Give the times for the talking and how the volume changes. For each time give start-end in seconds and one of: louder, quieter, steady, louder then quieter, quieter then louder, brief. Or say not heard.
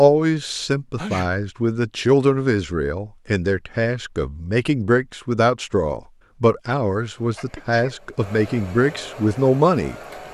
0.0-10.3 steady.